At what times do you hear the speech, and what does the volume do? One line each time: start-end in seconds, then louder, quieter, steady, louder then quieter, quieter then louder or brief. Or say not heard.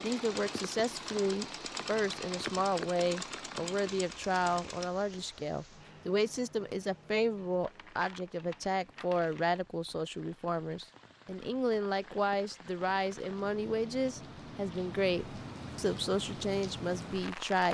0.0-17.6 steady.